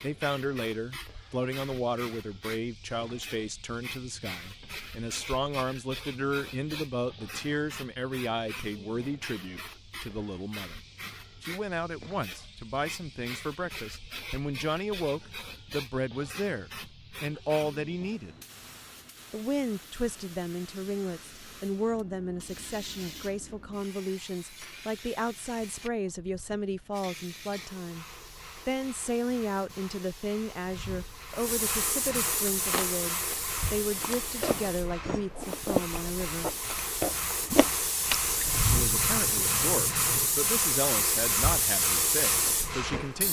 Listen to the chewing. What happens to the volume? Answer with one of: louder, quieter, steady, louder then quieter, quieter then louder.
louder then quieter.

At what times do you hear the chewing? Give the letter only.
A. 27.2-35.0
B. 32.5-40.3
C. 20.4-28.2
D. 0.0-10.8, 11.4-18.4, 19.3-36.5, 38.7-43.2
B.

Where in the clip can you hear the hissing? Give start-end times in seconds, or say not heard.
0.0-43.2.